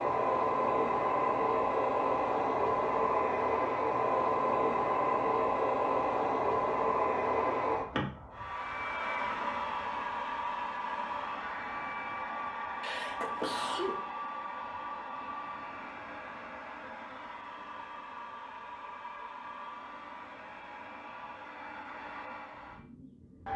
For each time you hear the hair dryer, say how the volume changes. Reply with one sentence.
The hair dryer can be heard from 0.0 to 23.5 s, getting quieter.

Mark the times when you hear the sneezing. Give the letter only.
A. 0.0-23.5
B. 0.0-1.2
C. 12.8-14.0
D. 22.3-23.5
C.